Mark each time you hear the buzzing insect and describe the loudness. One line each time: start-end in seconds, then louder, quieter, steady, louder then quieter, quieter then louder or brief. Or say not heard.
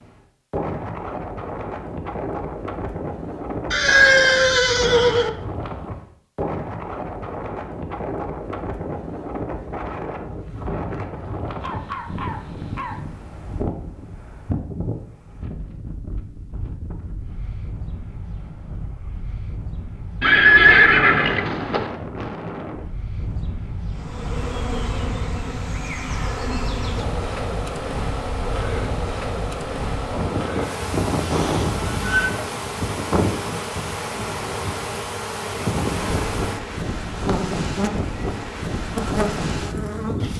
23.9-40.3 steady.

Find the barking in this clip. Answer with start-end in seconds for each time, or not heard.
11.6-13.0.